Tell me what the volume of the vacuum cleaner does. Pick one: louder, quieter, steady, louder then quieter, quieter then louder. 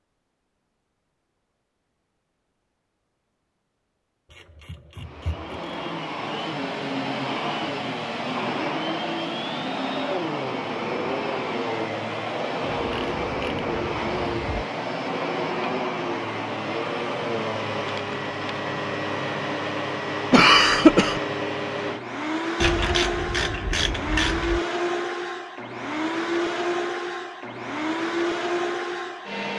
steady.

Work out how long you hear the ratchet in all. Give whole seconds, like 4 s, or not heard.
5 s.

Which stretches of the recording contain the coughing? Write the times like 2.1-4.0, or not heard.
20.3-21.2.